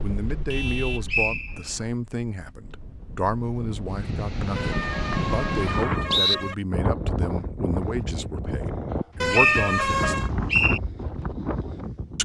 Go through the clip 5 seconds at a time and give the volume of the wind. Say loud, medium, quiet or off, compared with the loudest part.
medium, loud, loud.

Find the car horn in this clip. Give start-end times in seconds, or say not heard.
0.5-1.1, 4.5-6.5, 9.2-10.3.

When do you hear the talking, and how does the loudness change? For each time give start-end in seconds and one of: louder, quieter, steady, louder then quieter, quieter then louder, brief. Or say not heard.
0.0-10.3 steady.